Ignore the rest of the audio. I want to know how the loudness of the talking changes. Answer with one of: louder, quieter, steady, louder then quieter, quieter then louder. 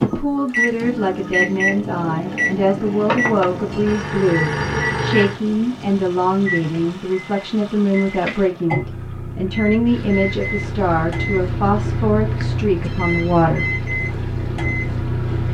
steady.